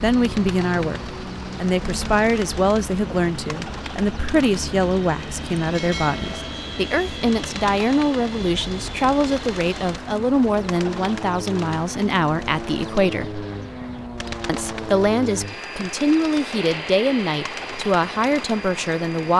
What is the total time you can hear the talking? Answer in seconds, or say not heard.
18 s.